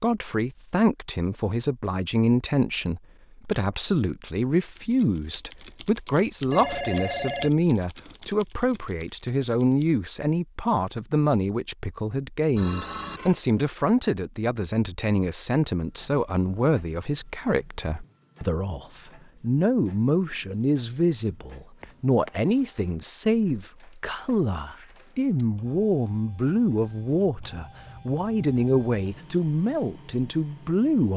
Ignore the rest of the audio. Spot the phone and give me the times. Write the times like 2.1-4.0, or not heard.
6.5-7.5, 12.6-13.4, 21.8-22.3.